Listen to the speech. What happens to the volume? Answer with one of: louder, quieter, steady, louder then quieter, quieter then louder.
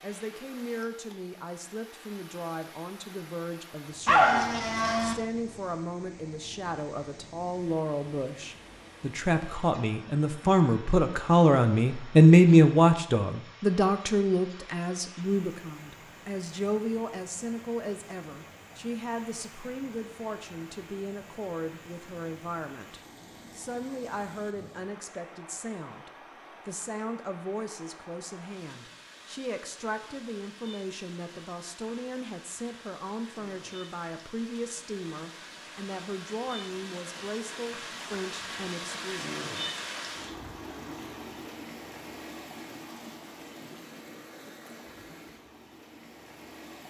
louder then quieter.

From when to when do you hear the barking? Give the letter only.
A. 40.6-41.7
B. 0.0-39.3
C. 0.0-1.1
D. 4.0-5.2
D.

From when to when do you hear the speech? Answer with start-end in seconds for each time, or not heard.
0.0-39.3.